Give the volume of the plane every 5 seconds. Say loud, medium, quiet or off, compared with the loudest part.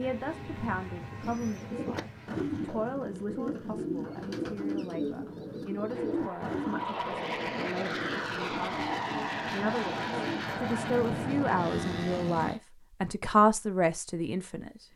medium, loud, loud.